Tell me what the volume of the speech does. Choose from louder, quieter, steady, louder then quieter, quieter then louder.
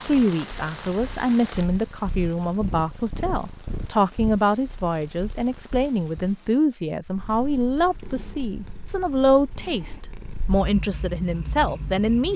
steady.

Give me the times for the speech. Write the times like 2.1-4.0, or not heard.
0.0-12.3.